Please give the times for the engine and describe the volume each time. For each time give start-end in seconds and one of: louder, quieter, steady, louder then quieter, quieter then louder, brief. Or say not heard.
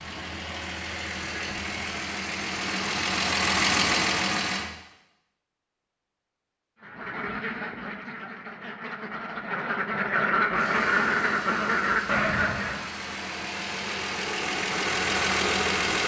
0.0-4.7 louder
10.5-16.0 louder.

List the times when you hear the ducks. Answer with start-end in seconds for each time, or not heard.
6.8-12.9.